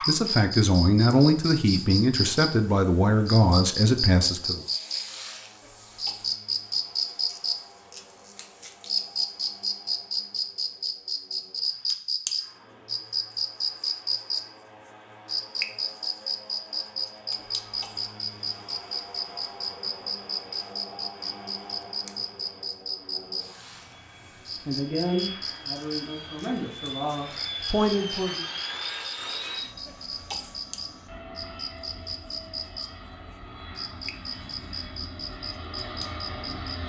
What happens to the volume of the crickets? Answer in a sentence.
The loudness of the crickets goes down.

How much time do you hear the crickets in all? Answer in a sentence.
The crickets can be heard for 37 seconds in total.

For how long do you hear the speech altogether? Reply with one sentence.
You can hear the speech for 8 seconds altogether.